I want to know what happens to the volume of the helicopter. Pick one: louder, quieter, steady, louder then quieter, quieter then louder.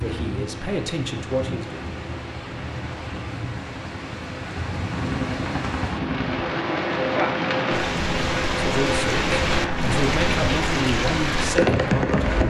louder.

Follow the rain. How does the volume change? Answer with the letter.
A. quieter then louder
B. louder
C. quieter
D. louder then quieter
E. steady
B.